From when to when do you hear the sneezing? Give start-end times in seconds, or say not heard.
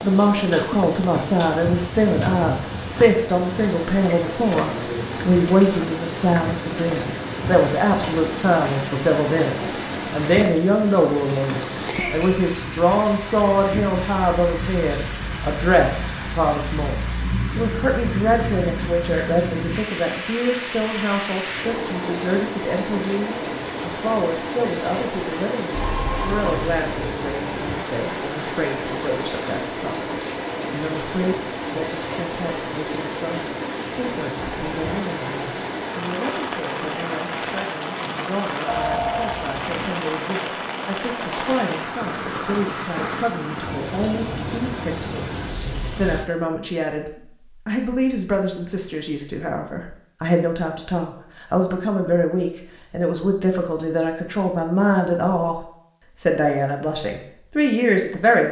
not heard.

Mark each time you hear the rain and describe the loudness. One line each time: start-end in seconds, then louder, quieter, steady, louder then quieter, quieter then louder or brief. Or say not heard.
0.0-46.2 steady.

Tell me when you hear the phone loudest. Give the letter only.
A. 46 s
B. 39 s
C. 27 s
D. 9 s
B.